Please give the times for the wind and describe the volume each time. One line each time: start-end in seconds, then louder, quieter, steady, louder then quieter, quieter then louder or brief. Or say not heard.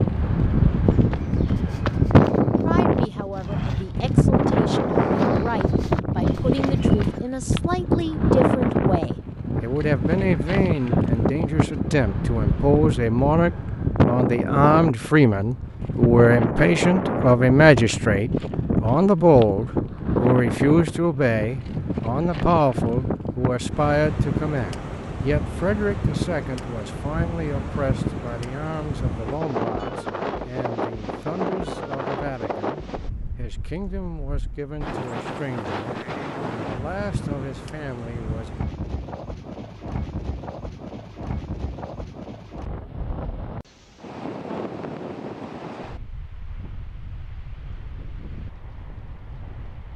0.0-49.9 quieter.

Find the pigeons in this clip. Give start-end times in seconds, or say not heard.
not heard.